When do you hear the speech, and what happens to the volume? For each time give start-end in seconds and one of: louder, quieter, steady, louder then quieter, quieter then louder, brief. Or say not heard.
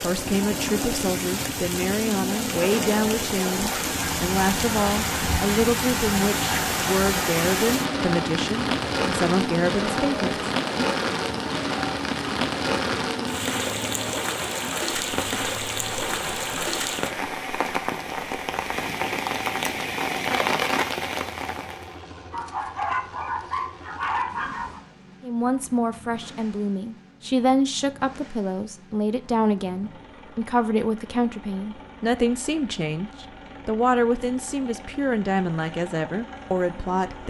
0.0-10.9 steady
25.2-37.2 steady.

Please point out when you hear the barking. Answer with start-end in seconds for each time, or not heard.
22.3-24.8.